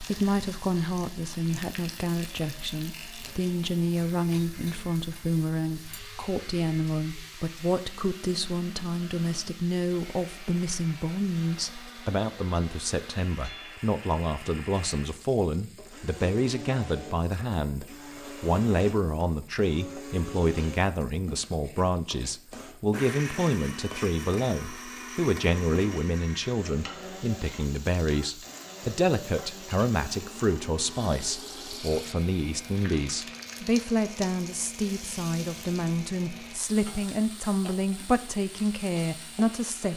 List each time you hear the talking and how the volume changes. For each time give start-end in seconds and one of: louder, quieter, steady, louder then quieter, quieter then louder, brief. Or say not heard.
0.0-39.9 steady.